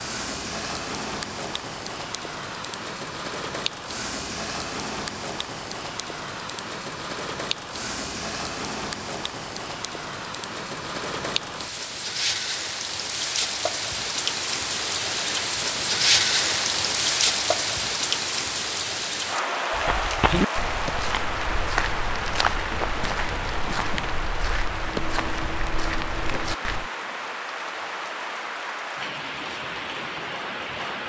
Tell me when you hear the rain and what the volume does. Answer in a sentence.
The rain can be heard from 0.0 to 31.0 s, getting louder then quieter.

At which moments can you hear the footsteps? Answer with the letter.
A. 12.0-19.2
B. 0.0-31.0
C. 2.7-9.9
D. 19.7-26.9
D.